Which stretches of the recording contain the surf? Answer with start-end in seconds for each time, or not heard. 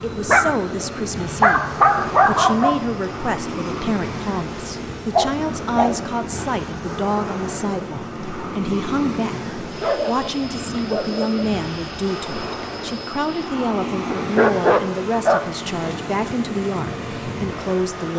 0.0-18.1.